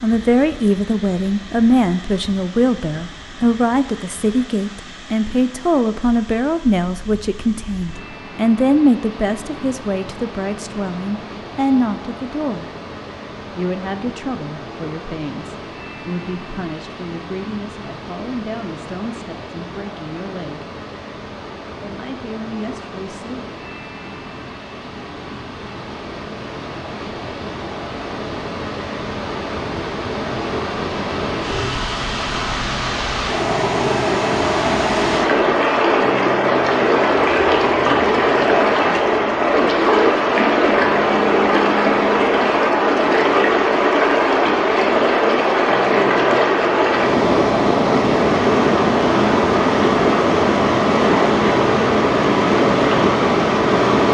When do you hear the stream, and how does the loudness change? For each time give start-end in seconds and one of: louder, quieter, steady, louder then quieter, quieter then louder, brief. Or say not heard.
0.0-54.0 louder.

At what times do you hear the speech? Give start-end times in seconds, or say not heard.
0.0-12.7, 13.6-20.6, 21.8-23.4.